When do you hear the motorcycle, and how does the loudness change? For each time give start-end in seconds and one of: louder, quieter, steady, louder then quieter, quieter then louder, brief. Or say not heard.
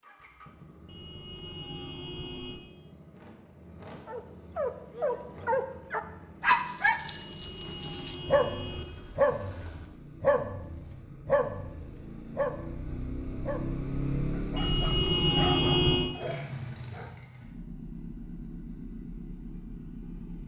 0.0-20.4 louder then quieter.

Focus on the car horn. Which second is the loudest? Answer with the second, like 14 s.
16 s.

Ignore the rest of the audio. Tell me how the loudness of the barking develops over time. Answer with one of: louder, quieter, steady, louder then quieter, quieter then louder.
quieter.